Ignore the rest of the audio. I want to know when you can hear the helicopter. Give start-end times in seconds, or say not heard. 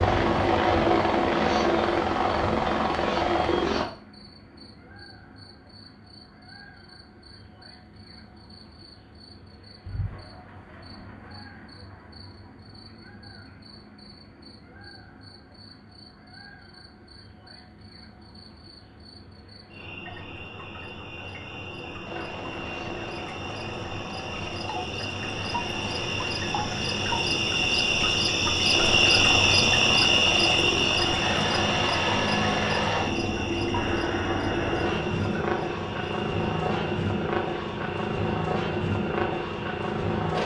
0.0-3.9, 22.1-40.4.